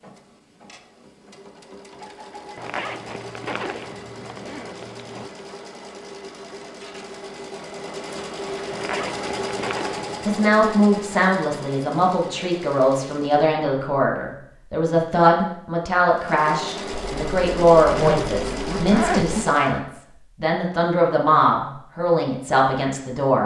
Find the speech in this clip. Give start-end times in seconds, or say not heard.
10.2-23.4.